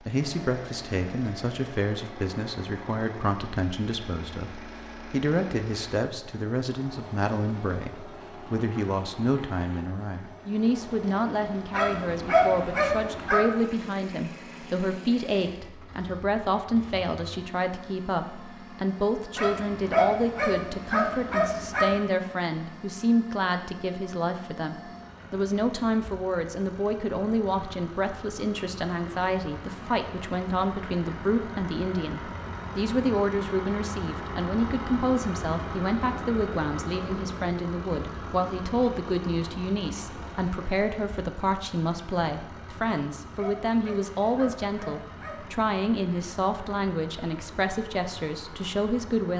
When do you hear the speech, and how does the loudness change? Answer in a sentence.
You can hear the speech from 0.1 to 49.3 s, at a steady volume.